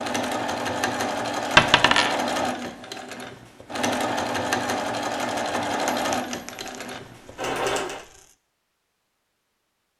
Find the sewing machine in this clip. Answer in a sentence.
You can hear the sewing machine from 0.0 to 8.1 s.